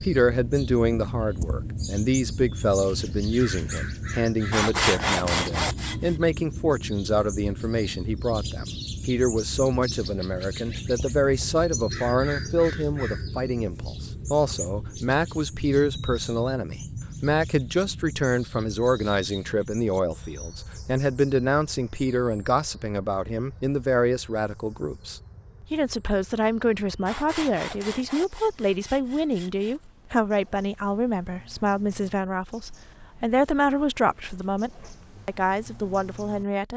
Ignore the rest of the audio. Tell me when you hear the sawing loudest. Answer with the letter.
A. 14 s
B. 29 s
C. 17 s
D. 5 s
D.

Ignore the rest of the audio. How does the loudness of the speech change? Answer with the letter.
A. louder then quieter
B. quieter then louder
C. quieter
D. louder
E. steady
E.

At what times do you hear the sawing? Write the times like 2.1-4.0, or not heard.
4.5-6.2, 27.1-29.8.